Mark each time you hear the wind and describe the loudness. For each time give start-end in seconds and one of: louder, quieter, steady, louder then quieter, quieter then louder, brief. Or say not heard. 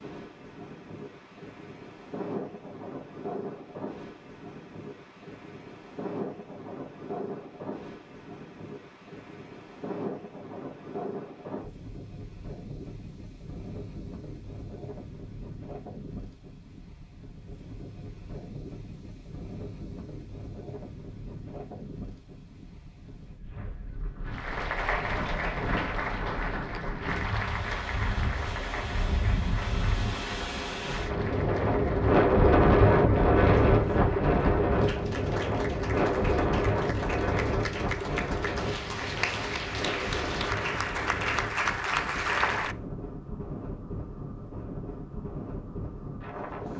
0.0-46.7 louder then quieter.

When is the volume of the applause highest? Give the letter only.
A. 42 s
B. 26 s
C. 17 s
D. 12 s
A.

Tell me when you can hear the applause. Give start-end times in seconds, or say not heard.
24.2-42.8.